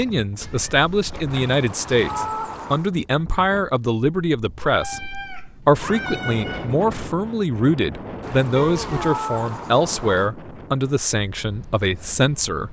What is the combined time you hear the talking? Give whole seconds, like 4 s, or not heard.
12 s.